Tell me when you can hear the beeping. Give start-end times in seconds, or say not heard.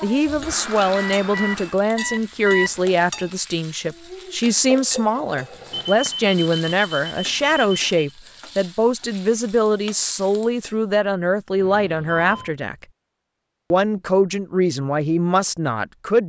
0.2-2.7, 5.7-8.0, 11.6-12.5.